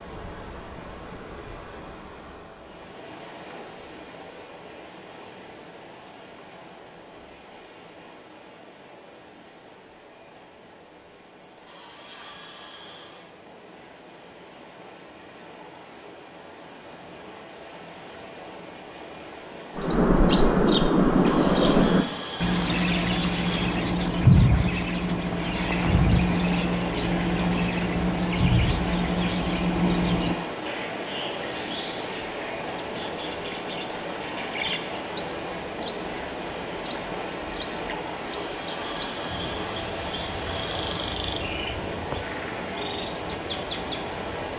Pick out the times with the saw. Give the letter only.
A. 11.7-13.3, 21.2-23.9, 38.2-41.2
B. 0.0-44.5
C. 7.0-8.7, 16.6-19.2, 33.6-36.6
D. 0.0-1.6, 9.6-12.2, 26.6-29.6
A.